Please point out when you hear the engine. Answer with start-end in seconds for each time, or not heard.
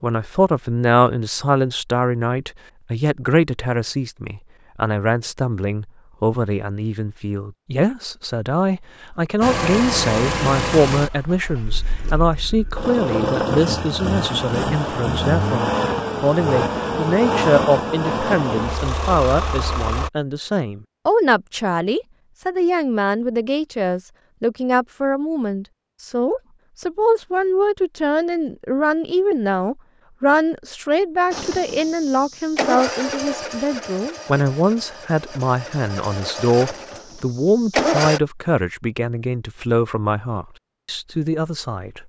9.4-20.1, 31.3-38.2.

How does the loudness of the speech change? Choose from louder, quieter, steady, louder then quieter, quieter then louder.
steady.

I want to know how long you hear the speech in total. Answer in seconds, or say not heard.
42 s.